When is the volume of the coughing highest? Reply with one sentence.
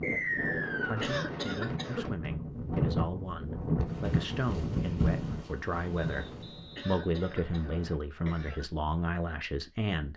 The loudest moment of the coughing is at 1 second.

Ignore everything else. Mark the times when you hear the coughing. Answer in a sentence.
The coughing can be heard from 1.0 to 2.0 s and from 6.8 to 8.7 s.